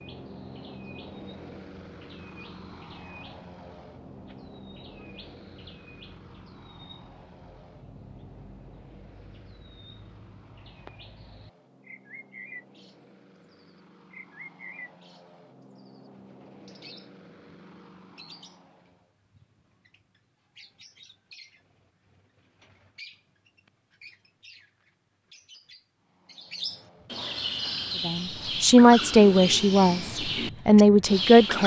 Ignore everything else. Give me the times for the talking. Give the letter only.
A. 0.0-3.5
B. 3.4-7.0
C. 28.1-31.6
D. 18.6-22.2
C.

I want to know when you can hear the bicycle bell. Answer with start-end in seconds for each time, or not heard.
not heard.